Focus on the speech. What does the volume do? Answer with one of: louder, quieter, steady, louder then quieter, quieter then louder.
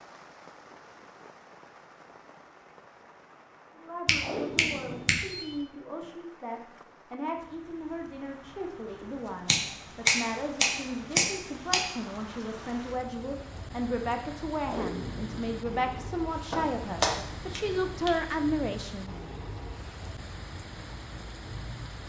louder.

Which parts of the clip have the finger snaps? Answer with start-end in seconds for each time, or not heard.
4.0-5.5, 9.4-11.8, 16.5-18.1.